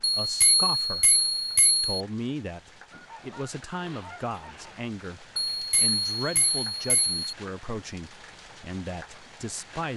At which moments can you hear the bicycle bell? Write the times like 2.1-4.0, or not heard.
0.0-1.9, 5.5-7.2.